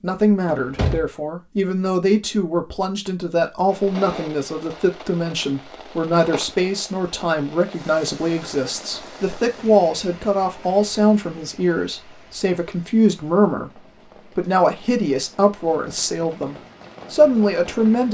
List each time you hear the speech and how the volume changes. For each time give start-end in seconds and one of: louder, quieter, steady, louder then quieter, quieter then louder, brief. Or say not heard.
0.0-18.0 steady.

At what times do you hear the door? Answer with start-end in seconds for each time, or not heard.
0.5-1.1.